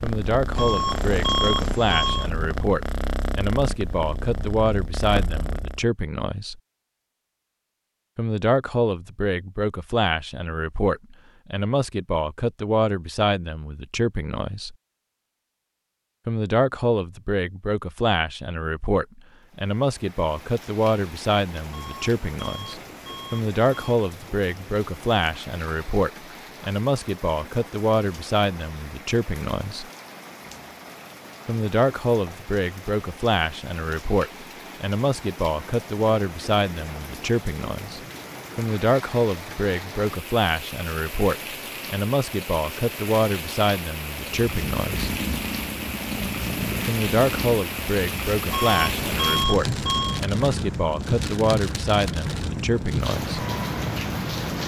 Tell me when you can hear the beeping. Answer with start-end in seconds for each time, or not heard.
0.6-2.3, 21.7-23.9, 48.5-50.2.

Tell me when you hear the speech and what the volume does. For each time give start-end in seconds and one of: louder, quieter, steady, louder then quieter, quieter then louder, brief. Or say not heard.
0.0-6.6 steady
8.2-14.8 steady
16.2-29.9 steady
31.4-45.1 steady
46.9-53.5 steady.